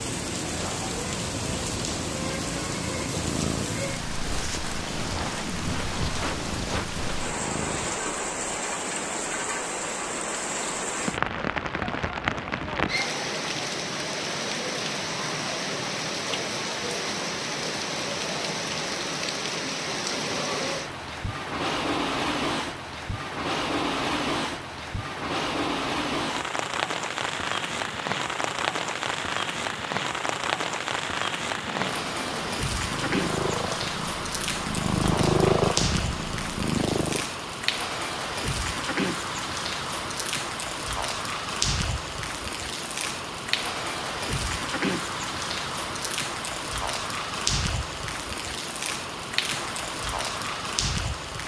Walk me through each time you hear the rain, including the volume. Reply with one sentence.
You can hear the rain from 0.0 to 51.4 s, at a steady volume.